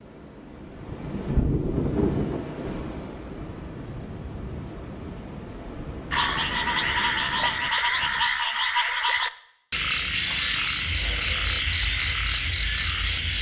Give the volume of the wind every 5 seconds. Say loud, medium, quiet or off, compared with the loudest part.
loud, medium, off.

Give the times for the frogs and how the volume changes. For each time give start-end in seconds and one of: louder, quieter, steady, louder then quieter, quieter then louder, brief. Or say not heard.
6.1-13.3 steady.